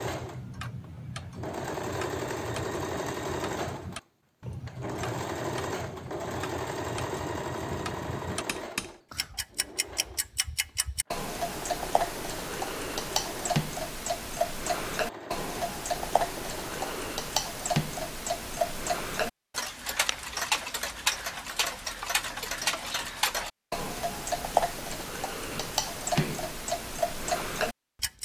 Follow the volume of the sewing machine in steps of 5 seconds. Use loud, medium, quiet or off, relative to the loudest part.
loud, loud, medium, medium, off, off.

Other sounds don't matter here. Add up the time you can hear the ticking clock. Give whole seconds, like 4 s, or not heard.
28 s.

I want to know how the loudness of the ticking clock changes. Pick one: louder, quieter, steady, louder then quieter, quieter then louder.
louder.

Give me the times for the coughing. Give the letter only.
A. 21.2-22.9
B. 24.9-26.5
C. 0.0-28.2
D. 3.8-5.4
B.